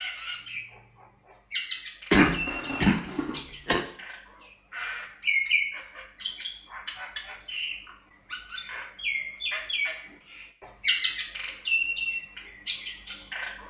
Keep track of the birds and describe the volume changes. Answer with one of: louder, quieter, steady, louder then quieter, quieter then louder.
louder.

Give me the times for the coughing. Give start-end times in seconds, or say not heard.
2.1-3.9.